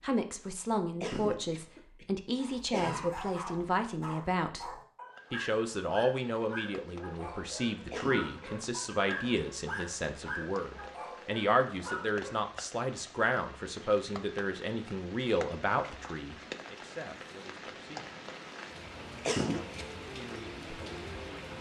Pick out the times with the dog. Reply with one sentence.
The dog can be heard from 2.4 to 12.3 s.